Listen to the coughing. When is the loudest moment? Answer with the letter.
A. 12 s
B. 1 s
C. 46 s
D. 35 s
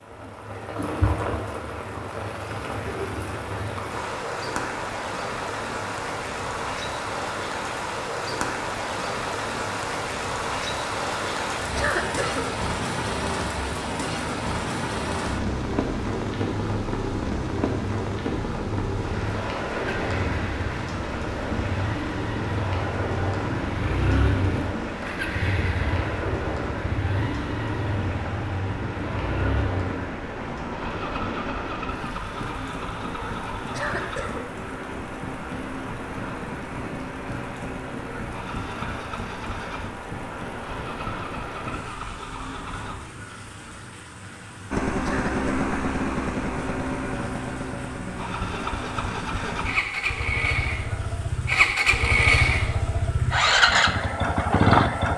A.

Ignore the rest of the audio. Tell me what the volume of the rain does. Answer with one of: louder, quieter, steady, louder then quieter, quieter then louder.
quieter.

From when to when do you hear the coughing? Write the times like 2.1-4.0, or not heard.
11.8-12.4, 33.7-34.5, 45.0-45.5.